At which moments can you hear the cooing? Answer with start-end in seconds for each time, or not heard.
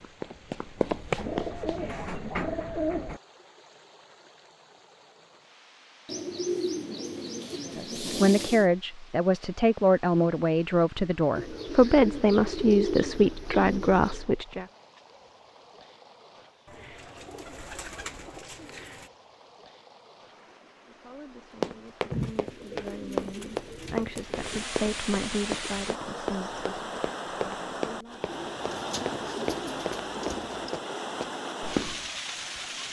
1.1-3.2, 6.0-8.7, 11.3-14.2, 16.6-19.1, 22.1-24.6, 28.2-30.7.